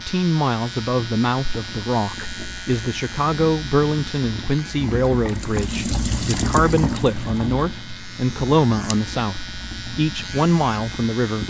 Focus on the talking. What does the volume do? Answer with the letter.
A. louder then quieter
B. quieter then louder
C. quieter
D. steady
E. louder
D.